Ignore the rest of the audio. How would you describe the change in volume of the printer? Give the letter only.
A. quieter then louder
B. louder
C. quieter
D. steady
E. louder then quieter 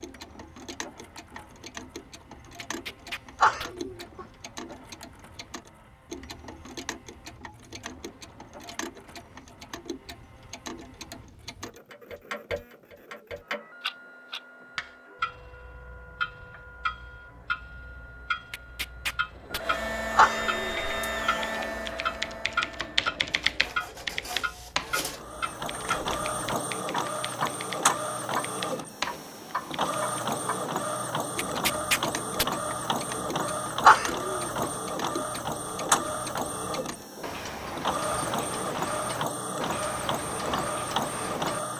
B.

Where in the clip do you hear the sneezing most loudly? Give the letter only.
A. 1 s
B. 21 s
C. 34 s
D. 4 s
C.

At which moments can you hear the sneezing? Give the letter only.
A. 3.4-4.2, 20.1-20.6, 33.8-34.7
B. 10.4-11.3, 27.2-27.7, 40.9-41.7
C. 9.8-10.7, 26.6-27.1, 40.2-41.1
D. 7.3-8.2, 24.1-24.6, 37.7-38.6
A.